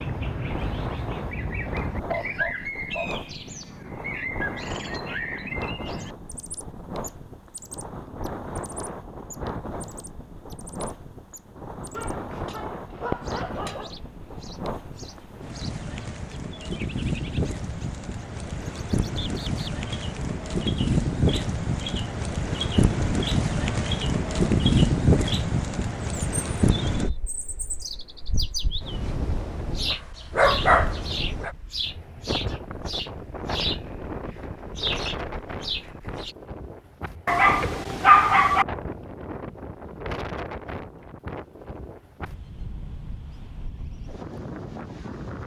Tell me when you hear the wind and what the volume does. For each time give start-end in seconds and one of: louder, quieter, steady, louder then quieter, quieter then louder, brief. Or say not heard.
0.0-45.4 louder then quieter.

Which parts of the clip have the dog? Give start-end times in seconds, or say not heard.
1.6-3.1, 11.9-13.9, 29.9-31.5, 37.2-38.6.